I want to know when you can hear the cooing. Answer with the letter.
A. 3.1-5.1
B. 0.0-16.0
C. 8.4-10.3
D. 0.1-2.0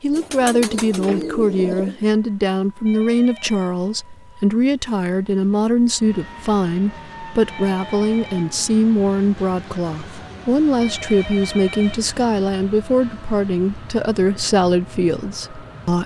D.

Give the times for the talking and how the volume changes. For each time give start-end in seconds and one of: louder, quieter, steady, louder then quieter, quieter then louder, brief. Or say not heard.
0.0-16.0 steady.